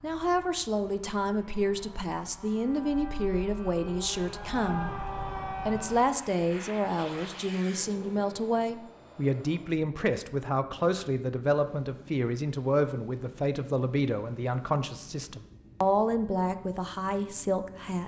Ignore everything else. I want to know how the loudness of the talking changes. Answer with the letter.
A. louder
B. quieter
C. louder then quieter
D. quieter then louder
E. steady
E.